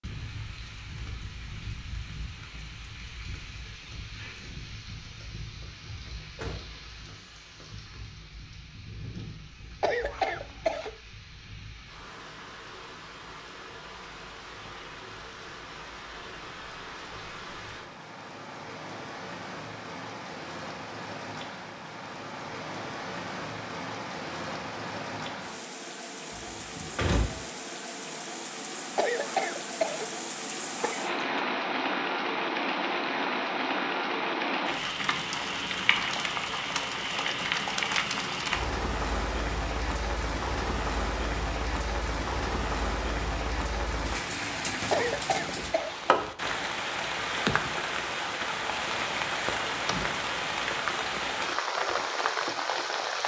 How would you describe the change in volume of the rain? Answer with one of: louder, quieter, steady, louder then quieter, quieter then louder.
louder.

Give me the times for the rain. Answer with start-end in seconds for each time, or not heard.
0.0-53.2.